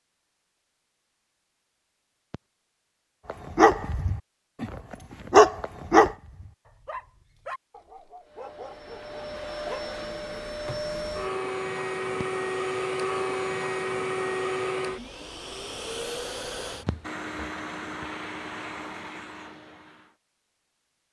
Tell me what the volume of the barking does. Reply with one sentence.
The volume of the barking goes up, then down.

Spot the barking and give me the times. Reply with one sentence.
You can hear the barking from 3.2 to 9.8 s.